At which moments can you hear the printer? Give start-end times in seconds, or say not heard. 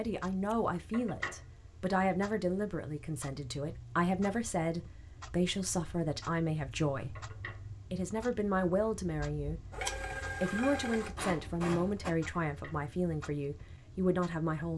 9.7-12.2.